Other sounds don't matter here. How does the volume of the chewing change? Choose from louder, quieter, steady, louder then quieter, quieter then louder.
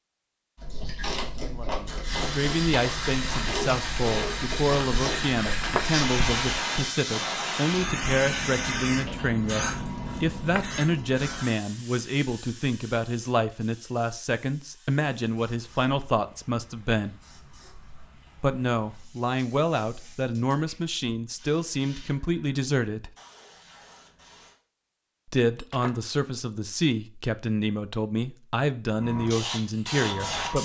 steady.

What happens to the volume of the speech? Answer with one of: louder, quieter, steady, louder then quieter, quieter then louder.
steady.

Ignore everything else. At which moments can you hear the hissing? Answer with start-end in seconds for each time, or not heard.
2.0-24.6, 28.9-30.6.